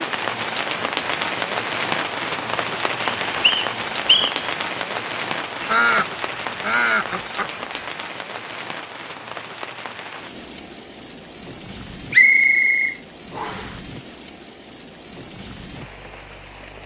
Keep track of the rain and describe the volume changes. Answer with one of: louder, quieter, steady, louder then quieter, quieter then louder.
quieter.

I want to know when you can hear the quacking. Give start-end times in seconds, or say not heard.
5.6-7.8.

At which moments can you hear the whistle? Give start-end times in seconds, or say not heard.
3.0-4.5, 12.1-13.7.